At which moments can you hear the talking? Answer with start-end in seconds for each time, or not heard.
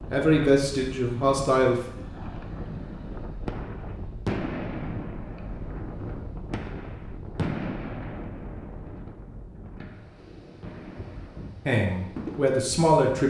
0.0-1.8, 11.7-13.2.